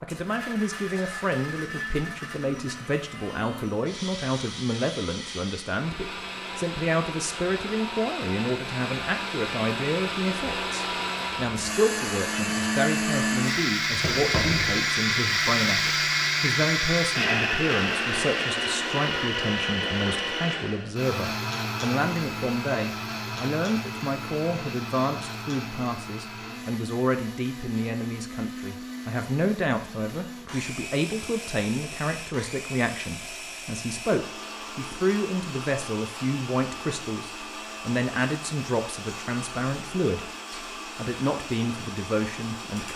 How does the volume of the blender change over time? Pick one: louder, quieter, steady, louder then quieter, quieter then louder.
louder then quieter.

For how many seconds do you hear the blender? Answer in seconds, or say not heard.
43 s.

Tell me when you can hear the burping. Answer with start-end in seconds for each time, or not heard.
14.0-14.8.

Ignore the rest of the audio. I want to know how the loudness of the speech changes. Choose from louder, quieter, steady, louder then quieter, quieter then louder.
steady.